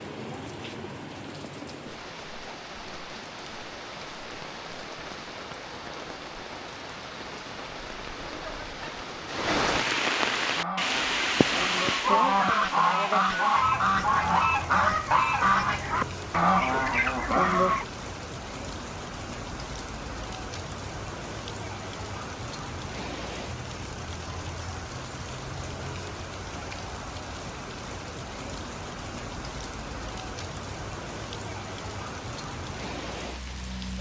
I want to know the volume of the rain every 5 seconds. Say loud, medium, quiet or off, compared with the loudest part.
medium, loud, loud, medium, medium, medium, medium.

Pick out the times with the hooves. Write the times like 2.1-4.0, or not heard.
not heard.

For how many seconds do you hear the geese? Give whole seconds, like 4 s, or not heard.
7 s.